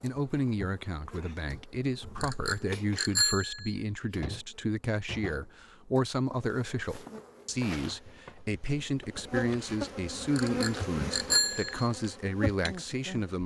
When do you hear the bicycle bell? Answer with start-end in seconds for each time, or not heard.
2.2-3.8, 10.3-11.8.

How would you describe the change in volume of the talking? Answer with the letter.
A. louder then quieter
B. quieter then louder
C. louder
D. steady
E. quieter
D.